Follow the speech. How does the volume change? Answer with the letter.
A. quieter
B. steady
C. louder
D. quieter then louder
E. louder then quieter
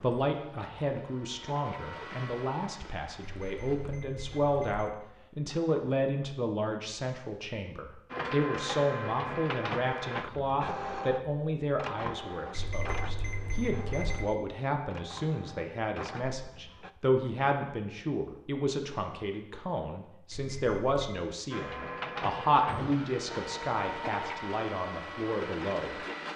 B.